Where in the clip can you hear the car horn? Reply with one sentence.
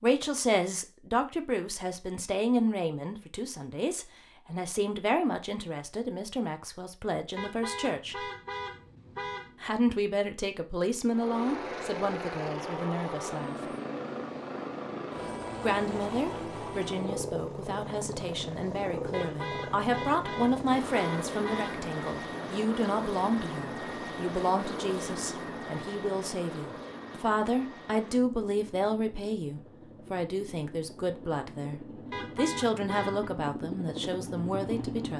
You can hear the car horn from 7.3 to 9.8 s, from 19.1 to 21.9 s and from 32.1 to 33.3 s.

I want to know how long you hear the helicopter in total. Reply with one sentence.
The helicopter can be heard for 24 seconds in total.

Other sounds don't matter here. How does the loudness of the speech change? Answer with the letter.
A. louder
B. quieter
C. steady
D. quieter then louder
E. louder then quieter
C.